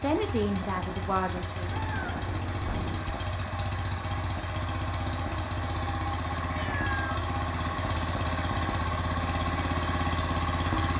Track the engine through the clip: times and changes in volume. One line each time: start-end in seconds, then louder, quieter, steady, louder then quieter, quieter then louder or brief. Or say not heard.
0.0-10.9 louder.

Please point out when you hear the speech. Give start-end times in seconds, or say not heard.
0.0-1.7.